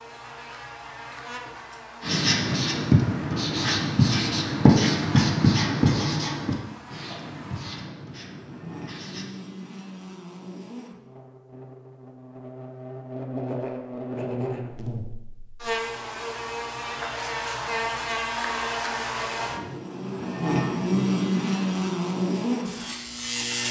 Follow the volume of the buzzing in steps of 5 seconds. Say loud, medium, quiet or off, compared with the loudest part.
quiet, quiet, medium, medium, loud.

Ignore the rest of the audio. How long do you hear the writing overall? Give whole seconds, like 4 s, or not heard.
7 s.